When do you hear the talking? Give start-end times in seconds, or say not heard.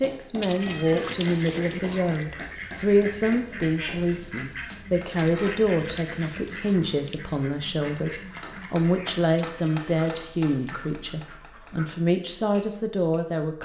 0.0-13.6.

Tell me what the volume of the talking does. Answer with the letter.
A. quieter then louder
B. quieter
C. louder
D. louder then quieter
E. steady
E.